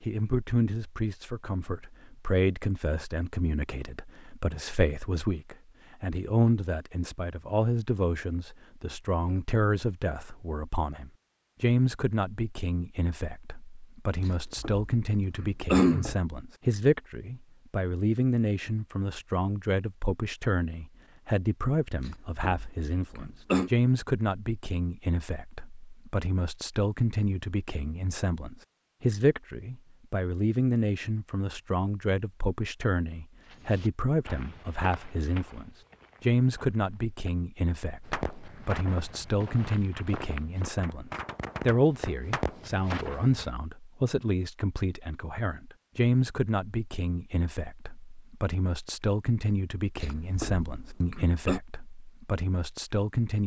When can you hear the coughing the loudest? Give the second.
16 s.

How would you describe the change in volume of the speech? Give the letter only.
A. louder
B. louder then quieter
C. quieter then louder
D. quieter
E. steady
E.